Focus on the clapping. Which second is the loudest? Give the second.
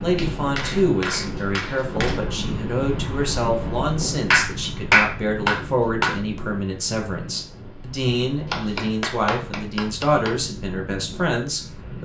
5 s.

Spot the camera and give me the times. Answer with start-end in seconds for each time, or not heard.
not heard.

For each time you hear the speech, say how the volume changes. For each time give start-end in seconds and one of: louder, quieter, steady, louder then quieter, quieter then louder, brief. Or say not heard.
0.0-12.0 steady.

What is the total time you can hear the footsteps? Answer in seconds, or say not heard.
not heard.